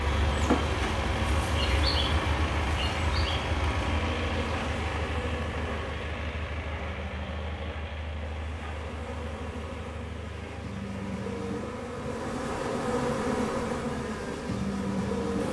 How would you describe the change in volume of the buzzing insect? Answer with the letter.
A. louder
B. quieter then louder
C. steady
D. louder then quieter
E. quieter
B.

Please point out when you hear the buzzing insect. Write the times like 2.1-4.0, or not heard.
0.0-15.4.